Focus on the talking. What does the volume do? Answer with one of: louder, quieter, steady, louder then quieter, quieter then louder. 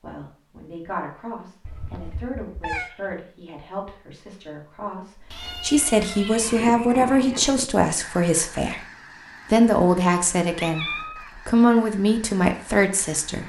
louder.